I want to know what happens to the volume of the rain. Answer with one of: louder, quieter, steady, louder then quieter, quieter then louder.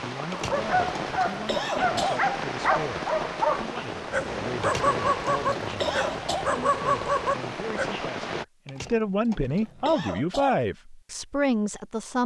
steady.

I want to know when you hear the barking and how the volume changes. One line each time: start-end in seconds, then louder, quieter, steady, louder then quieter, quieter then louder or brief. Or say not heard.
0.3-7.9 steady.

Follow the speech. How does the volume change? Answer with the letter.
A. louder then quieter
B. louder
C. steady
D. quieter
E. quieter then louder
B.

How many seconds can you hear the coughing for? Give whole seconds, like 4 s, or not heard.
6 s.